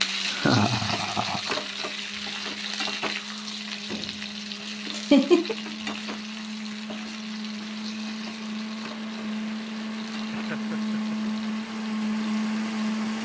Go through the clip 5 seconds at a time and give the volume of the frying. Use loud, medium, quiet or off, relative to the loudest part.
loud, medium, quiet.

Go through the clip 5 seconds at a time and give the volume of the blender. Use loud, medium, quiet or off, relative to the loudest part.
quiet, medium, loud.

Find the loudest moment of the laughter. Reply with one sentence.
The volume of the laughter peaks at 5 seconds.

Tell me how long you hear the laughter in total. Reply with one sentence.
You can hear the laughter for 3 seconds altogether.